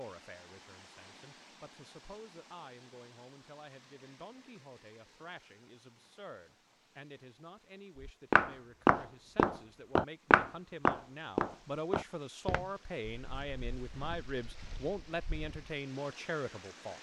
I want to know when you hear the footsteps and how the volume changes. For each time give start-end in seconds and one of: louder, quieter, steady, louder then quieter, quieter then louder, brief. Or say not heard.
8.0-15.8 quieter.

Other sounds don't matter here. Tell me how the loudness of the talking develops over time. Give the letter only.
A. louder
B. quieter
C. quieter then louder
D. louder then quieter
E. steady
A.